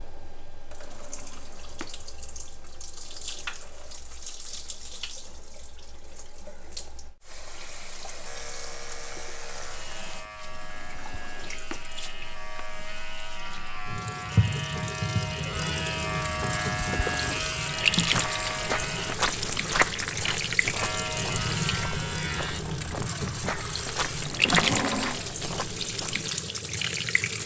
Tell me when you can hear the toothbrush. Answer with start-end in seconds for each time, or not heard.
not heard.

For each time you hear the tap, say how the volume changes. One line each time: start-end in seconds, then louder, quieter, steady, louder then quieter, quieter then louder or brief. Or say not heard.
0.0-27.4 louder.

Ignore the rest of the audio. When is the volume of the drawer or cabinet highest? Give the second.
25 s.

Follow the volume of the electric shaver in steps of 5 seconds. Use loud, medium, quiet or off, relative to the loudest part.
off, medium, medium, loud, loud, off.